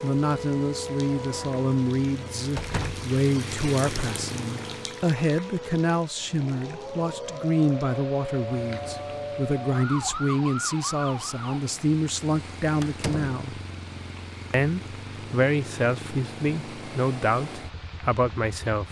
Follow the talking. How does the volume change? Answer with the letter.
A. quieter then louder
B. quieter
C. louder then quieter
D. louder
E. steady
E.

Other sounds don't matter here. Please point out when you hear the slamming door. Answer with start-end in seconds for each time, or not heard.
2.5-3.0, 12.8-13.4.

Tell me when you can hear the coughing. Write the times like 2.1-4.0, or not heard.
not heard.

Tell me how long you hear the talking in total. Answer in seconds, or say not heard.
18 s.